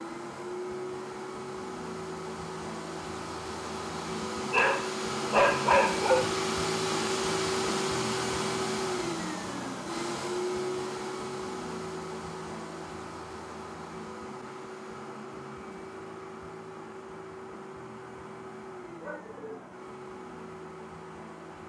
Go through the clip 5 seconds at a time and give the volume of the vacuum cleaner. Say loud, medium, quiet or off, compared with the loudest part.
medium, loud, medium, quiet, quiet.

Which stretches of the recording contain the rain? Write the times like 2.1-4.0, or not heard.
not heard.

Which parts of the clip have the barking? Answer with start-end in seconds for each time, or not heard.
4.2-6.3, 19.0-19.7.